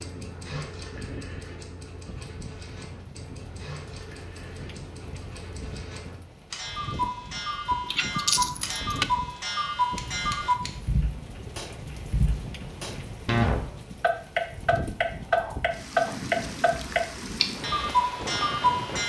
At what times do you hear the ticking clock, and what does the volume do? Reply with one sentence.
The ticking clock can be heard from 0.0 to 19.0 s, getting louder.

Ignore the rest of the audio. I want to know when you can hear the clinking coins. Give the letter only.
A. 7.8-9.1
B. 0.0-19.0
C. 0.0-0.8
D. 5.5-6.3
A.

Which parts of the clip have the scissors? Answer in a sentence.
The scissors can be heard from 9.9 to 10.8 s.